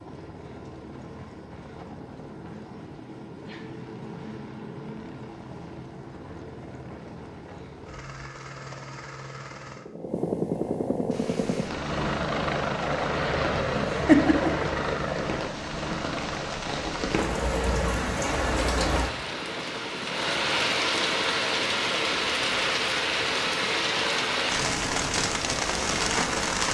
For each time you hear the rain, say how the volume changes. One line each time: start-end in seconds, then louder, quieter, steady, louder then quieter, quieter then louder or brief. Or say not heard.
11.1-26.6 louder.